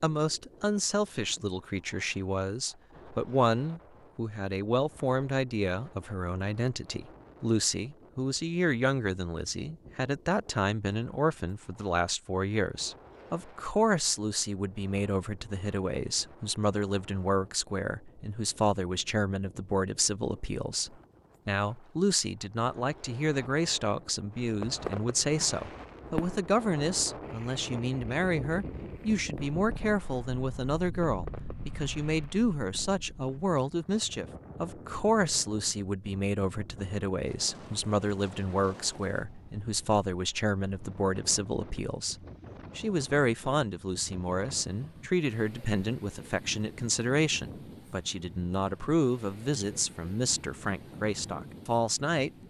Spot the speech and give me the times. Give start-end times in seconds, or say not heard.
0.0-42.1, 42.8-52.3.